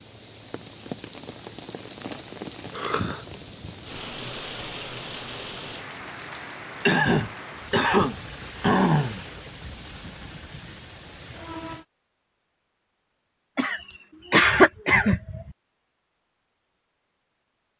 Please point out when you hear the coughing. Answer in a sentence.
You can hear the coughing from 2.7 to 3.2 s, from 6.8 to 9.2 s and from 13.6 to 15.4 s.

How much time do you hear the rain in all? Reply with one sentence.
The rain can be heard for 12 seconds in total.